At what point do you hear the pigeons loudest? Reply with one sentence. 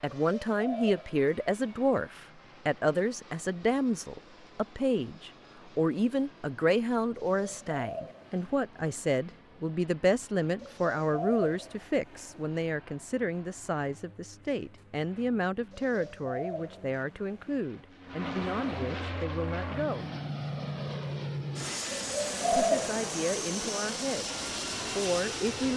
The volume of the pigeons peaks at 23 seconds.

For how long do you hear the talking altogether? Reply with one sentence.
The talking can be heard for 23 seconds in total.